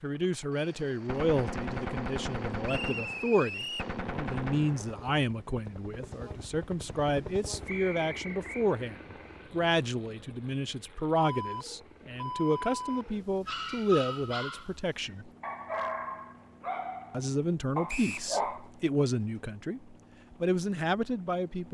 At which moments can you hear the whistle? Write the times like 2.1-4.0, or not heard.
2.6-4.0, 7.7-8.7, 17.9-18.3.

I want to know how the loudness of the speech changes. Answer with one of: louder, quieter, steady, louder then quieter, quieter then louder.
steady.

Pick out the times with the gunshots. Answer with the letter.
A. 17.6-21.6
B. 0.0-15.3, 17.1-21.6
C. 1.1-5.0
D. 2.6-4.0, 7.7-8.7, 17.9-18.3
C.